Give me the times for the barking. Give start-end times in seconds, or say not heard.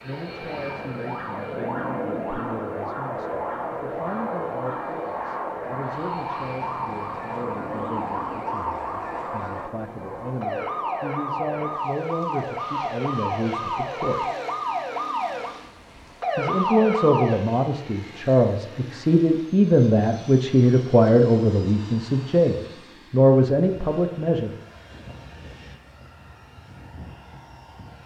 not heard.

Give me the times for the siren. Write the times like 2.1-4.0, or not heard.
0.0-17.4.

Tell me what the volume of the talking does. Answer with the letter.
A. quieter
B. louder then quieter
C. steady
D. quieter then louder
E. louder
E.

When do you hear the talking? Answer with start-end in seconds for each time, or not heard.
0.0-14.3, 16.4-24.6.